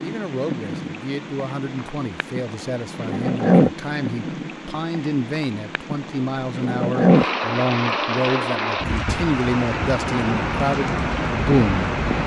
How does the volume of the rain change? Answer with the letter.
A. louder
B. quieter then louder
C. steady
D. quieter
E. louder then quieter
A.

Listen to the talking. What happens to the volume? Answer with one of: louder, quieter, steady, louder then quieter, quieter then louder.
louder.